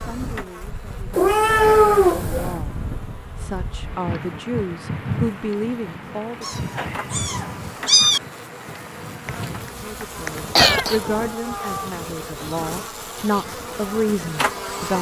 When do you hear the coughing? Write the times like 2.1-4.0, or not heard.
9.2-11.0.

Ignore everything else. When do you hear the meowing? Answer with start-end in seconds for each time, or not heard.
1.1-2.5, 6.4-8.2, 10.6-11.9.